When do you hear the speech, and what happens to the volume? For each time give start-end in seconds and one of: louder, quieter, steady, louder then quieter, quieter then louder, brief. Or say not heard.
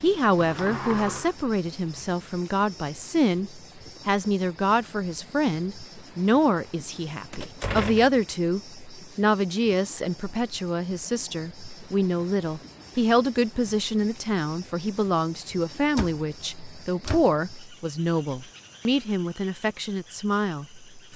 0.0-21.1 steady.